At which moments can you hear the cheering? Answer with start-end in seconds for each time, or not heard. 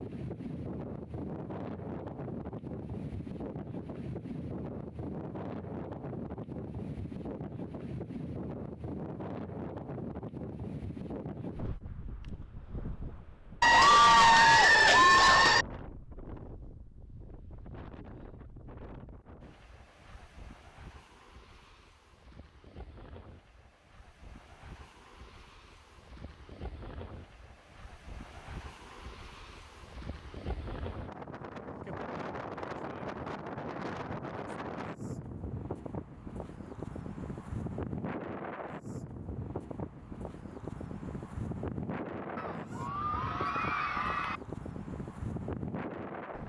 13.6-15.7, 42.4-44.4.